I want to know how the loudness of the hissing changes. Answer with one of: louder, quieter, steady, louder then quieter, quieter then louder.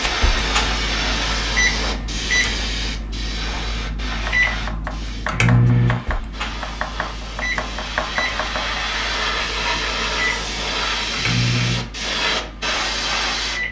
quieter then louder.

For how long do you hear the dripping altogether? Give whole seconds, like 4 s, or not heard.
not heard.